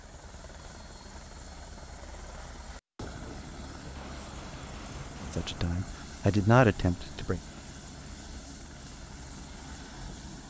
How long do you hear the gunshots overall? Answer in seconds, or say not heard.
2 s.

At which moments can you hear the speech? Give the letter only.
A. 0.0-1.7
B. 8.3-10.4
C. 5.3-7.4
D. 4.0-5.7
C.